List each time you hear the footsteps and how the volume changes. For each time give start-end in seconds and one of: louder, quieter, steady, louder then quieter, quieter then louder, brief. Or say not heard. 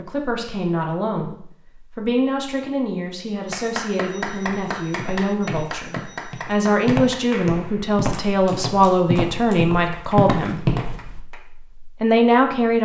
4.5-11.2 louder.